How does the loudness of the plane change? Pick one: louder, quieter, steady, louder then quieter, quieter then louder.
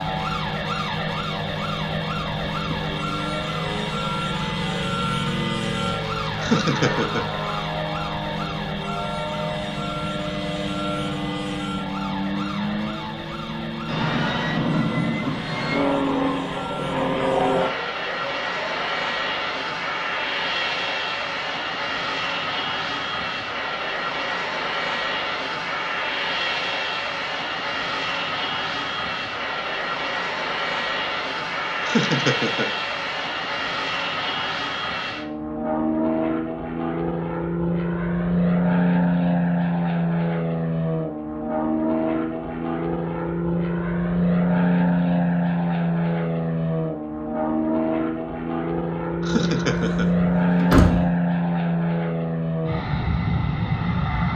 louder.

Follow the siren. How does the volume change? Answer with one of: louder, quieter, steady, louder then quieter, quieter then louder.
quieter.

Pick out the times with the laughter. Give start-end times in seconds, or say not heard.
6.3-7.2, 31.8-32.7, 49.2-50.1.